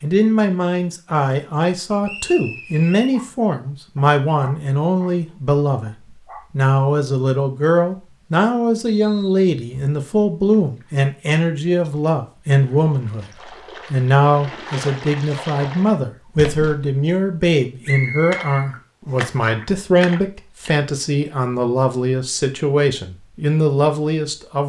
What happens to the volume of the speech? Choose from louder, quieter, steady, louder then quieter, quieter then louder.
steady.